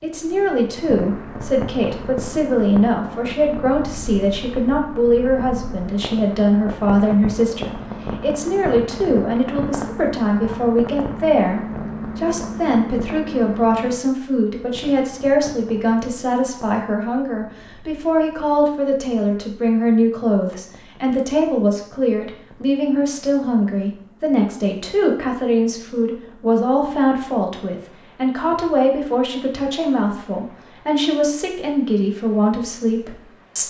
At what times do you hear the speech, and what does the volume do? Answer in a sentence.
You can hear the speech from 0.0 to 33.6 s, at a steady volume.